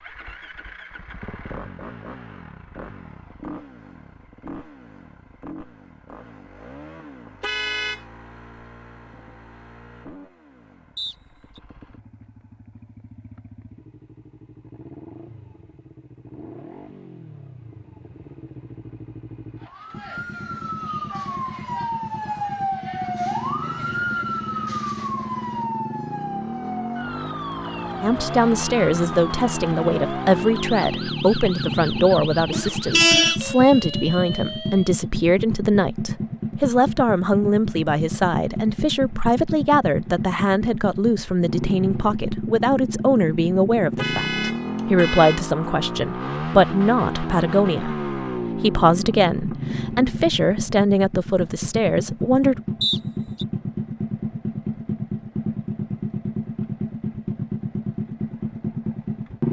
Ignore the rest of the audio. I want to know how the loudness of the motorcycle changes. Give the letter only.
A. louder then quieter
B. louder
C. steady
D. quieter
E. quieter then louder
B.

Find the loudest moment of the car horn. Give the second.
33 s.